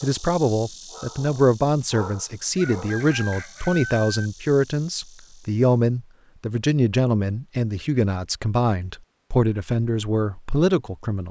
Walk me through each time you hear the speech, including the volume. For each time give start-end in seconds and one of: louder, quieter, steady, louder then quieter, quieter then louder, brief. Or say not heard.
0.0-11.2 steady.